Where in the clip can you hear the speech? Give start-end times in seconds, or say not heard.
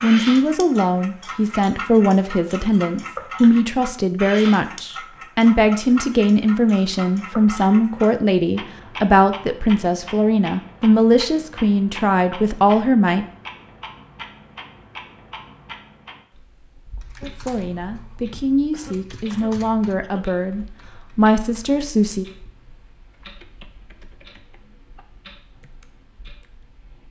0.0-13.2, 17.2-22.2.